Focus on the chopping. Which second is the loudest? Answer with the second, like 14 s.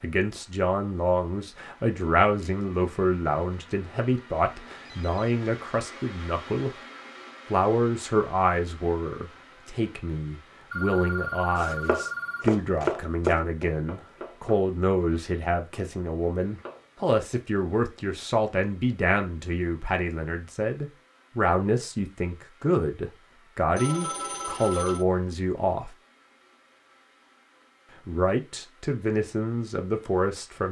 13 s.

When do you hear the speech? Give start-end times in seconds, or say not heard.
0.0-6.8, 7.5-25.9, 28.1-30.6.